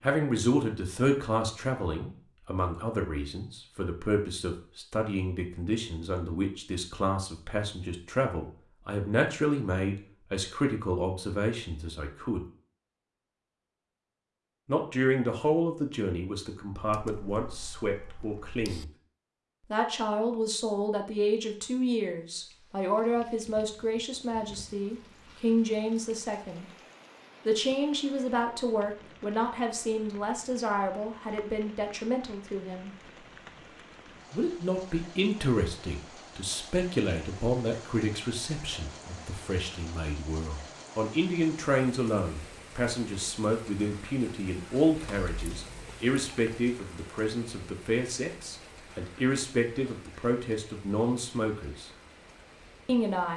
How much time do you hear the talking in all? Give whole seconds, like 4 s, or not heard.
47 s.